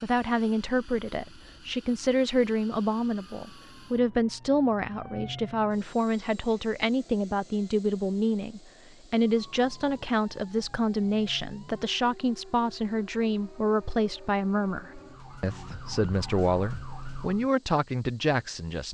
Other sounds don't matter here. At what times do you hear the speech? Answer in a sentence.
You can hear the speech from 0.0 to 18.8 s.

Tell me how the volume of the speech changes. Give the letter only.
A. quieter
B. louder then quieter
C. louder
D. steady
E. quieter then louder
D.